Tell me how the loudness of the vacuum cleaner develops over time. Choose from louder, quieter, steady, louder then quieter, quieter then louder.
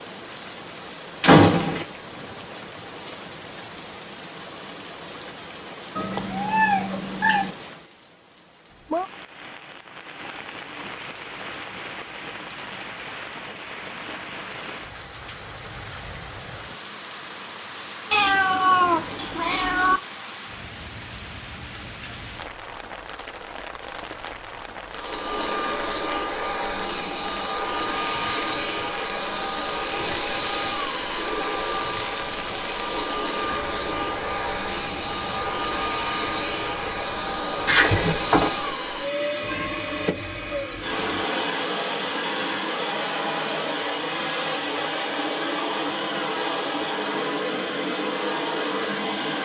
steady.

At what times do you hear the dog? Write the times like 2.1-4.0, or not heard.
not heard.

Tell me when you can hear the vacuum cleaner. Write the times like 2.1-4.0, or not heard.
24.9-49.4.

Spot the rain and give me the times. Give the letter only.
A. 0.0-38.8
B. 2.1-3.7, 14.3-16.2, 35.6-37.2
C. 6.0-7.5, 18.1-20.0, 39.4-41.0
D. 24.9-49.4
A.